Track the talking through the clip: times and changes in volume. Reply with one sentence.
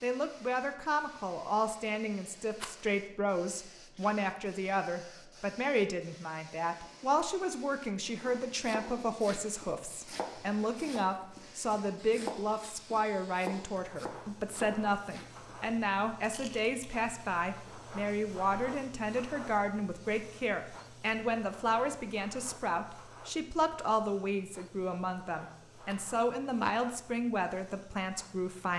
The talking can be heard from 0.0 to 28.7 s, at a steady volume.